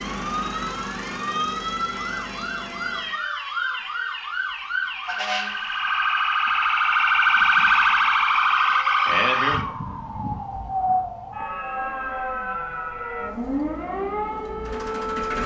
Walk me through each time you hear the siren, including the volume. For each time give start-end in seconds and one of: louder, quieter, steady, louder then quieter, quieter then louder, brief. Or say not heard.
0.0-15.4 louder then quieter.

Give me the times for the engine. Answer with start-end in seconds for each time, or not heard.
0.0-3.2, 13.2-15.4.